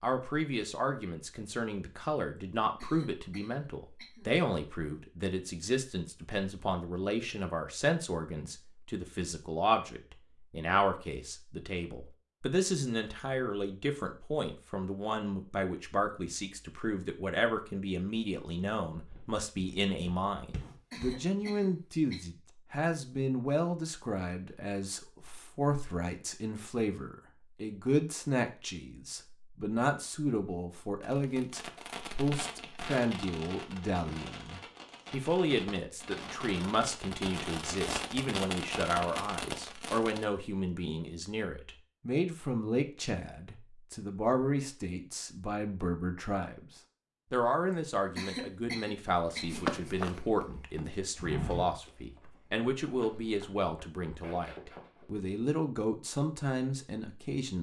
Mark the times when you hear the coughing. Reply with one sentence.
The coughing can be heard from 2.8 to 4.3 s, from 20.9 to 22.2 s and from 48.1 to 49.6 s.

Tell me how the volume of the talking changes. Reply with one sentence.
The loudness of the talking stays about the same.